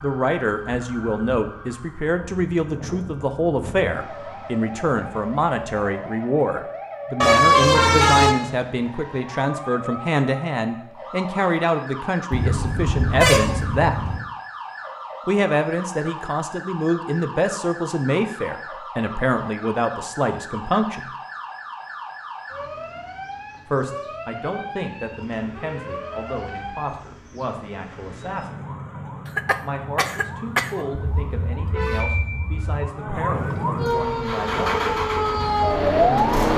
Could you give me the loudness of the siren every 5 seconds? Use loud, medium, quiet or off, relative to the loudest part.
quiet, quiet, quiet, quiet, quiet, quiet, medium, loud.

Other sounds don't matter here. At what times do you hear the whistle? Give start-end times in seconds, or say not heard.
not heard.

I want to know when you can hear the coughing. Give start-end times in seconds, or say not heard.
29.2-30.9.